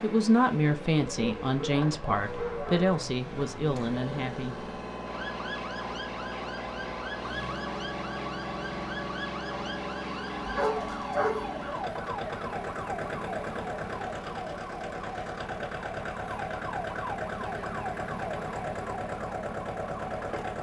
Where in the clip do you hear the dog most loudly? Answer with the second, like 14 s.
11 s.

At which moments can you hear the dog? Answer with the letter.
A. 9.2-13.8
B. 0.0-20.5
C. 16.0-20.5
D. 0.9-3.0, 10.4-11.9
D.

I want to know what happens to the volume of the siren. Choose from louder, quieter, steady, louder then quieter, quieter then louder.
steady.